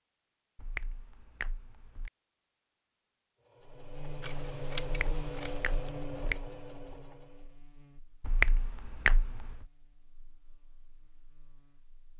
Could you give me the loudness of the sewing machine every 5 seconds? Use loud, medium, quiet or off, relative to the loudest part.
loud, loud, off.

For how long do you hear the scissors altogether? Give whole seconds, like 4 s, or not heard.
2 s.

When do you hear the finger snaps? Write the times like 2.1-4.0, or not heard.
0.6-2.1, 4.8-6.5, 8.2-9.7.